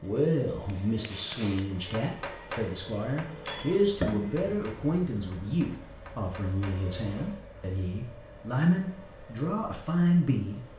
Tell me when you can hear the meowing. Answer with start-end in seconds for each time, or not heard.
3.5-4.5.